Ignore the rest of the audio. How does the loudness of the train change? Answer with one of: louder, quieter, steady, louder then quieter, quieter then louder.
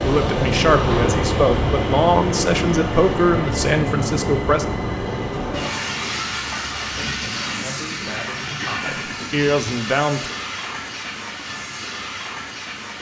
quieter.